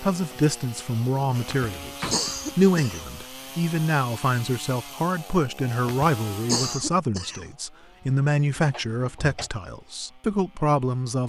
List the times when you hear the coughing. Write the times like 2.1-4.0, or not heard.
1.3-3.1, 5.7-7.5.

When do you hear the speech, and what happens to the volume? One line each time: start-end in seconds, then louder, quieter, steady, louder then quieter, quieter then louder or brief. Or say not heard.
0.0-11.2 steady.